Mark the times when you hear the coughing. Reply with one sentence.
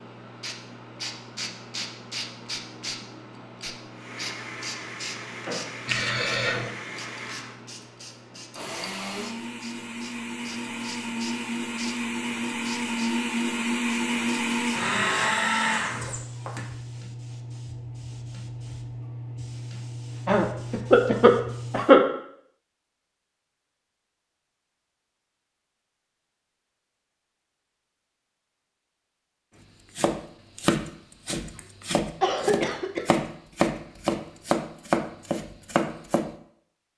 The coughing can be heard from 5.8 to 6.7 s, from 20.2 to 22.0 s and from 31.6 to 33.0 s.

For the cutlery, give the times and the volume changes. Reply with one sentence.
The cutlery can't be heard in this clip.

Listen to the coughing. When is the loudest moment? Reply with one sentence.
The volume of the coughing peaks at 22 seconds.